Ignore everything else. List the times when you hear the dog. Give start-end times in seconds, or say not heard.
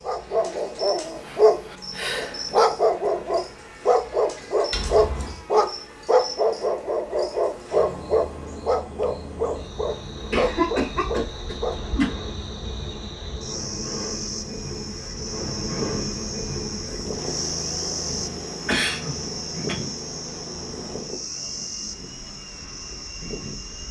0.1-11.8.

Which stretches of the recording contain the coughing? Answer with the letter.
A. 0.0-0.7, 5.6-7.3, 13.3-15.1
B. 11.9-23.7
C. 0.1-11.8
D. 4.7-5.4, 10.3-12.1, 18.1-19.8
D.